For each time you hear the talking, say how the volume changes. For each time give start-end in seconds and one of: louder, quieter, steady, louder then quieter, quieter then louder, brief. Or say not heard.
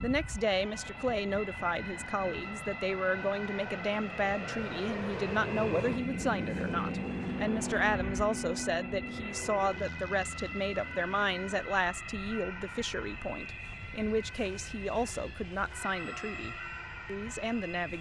0.0-17.9 steady.